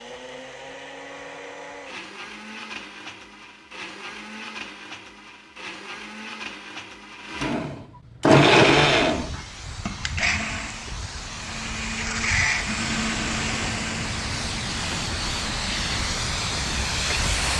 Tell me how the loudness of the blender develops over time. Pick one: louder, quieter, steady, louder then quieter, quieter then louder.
louder then quieter.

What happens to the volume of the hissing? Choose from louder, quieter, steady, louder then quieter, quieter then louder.
louder.